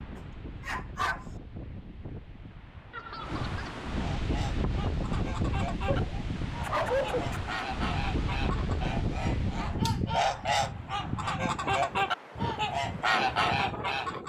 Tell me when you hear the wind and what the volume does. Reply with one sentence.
The wind can be heard from 0.0 to 14.2 s, getting louder then quieter.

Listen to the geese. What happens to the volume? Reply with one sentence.
The volume of the geese goes up.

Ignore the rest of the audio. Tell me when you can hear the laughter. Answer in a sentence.
The laughter can be heard from 2.9 to 3.9 s.